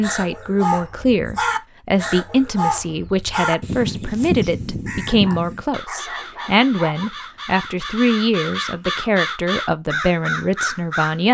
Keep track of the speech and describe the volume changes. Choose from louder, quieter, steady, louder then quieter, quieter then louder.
steady.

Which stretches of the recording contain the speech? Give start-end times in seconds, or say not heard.
0.0-11.2.